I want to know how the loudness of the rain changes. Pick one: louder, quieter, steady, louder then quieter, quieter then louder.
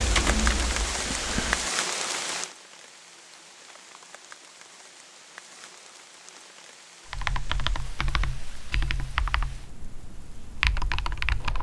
quieter.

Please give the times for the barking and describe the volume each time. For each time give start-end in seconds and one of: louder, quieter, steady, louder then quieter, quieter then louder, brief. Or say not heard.
not heard.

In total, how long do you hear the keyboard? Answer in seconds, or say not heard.
6 s.